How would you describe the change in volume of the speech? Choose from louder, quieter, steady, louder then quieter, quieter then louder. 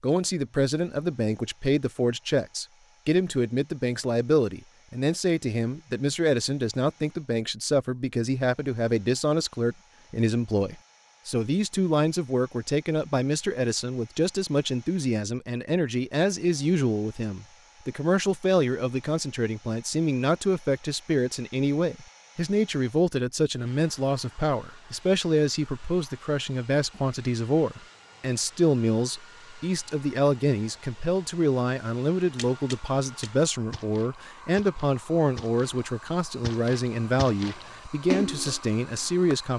steady.